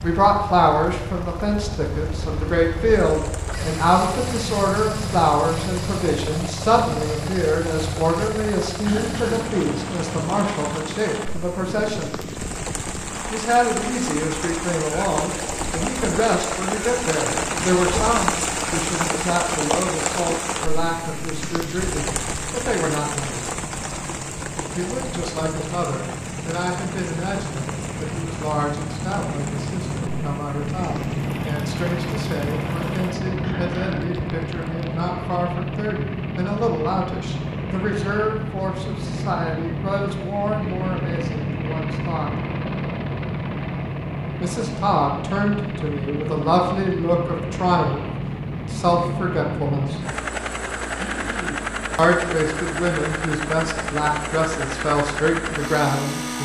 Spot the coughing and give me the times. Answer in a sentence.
You can hear the coughing from 8.8 to 9.4 s, from 33.4 to 34.1 s and from 51.0 to 51.7 s.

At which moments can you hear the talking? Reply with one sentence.
You can hear the talking from 0.0 to 12.2 s, from 13.3 to 23.5 s, from 24.8 to 42.3 s, from 44.4 to 50.0 s and from 52.0 to 56.4 s.